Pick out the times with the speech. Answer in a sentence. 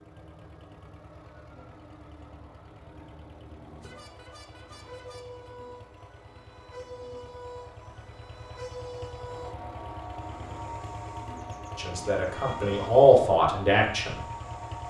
The speech can be heard from 11.8 to 14.2 s.